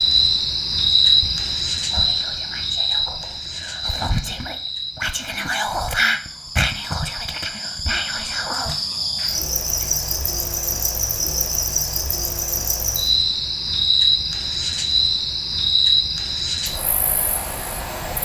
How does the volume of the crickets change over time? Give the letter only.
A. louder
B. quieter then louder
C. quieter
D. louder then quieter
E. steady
B.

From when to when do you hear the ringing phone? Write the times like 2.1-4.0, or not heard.
not heard.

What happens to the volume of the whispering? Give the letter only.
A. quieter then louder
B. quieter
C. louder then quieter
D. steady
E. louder
C.